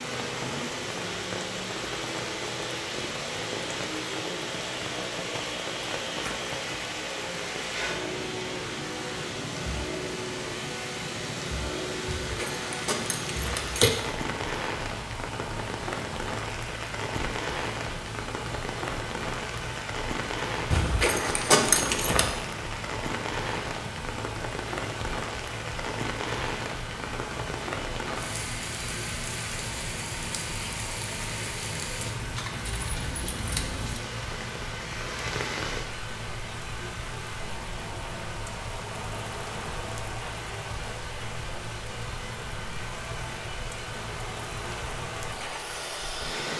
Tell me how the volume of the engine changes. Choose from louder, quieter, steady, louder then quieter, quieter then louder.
steady.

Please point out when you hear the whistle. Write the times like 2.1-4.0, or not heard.
not heard.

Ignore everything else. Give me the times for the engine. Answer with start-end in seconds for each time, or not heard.
0.0-46.5.